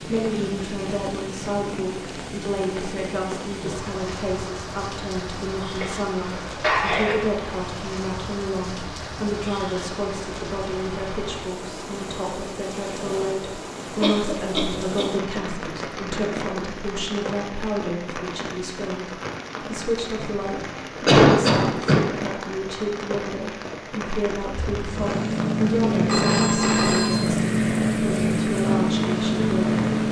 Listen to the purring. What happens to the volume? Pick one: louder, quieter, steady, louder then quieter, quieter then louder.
steady.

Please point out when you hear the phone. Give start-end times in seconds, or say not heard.
26.1-27.4.